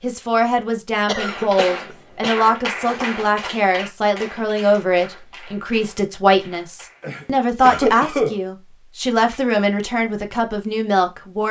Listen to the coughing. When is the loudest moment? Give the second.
8 s.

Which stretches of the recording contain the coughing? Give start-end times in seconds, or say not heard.
1.1-2.4, 7.0-8.4.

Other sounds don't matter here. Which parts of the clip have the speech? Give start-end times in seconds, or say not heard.
0.0-11.4.